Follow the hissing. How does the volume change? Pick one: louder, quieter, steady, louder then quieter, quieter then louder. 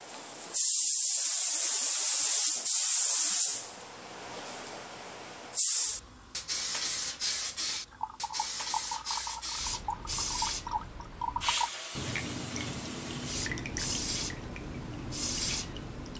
quieter.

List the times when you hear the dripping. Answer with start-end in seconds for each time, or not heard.
7.7-16.1.